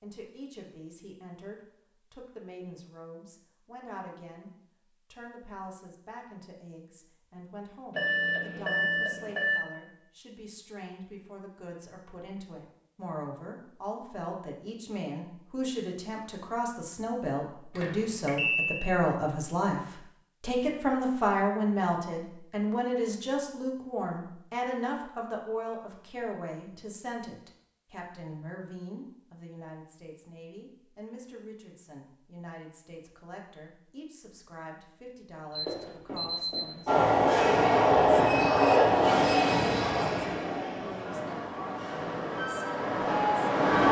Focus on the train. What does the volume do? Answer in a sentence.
The loudness of the train goes down, then up.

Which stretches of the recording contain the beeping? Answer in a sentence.
You can hear the beeping from 7.9 to 9.6 s, from 17.8 to 18.9 s and from 35.5 to 36.8 s.